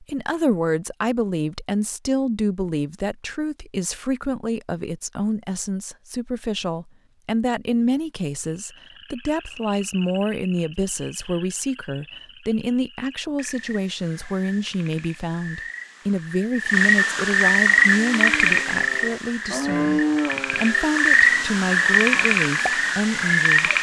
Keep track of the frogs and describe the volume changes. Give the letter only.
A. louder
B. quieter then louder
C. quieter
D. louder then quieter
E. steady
A.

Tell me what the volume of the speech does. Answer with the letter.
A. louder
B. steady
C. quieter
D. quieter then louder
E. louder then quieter
B.